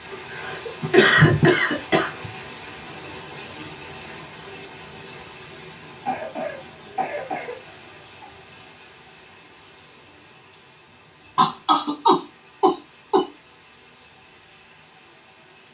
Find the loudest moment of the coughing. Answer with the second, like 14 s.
1 s.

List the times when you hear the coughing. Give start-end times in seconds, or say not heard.
0.3-2.3, 6.0-8.2, 11.3-13.2.